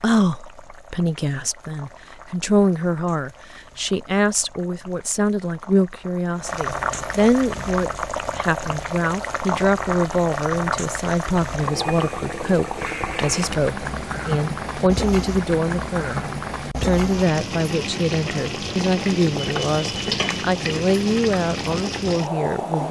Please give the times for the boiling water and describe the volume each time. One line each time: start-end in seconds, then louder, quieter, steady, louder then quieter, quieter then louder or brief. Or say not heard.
0.1-22.8 louder.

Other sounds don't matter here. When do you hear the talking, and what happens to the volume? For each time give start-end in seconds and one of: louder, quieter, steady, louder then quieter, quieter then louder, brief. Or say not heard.
0.0-22.8 steady.